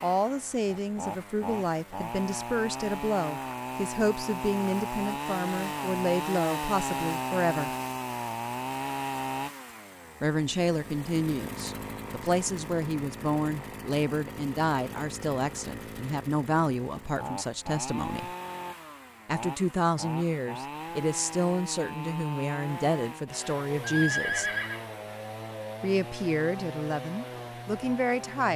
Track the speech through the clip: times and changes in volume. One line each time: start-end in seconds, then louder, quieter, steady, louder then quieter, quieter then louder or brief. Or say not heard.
0.0-7.7 steady
10.2-18.3 steady
19.2-24.5 steady
25.8-28.5 brief.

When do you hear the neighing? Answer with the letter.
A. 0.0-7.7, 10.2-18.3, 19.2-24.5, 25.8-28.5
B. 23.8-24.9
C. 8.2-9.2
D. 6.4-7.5
B.